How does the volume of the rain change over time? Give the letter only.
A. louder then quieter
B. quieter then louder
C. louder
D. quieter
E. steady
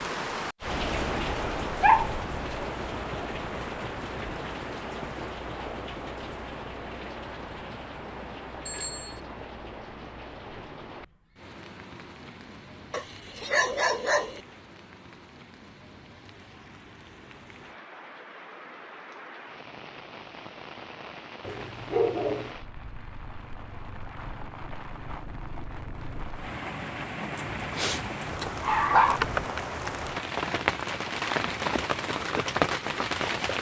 B.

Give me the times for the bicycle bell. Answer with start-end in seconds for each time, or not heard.
8.7-9.2.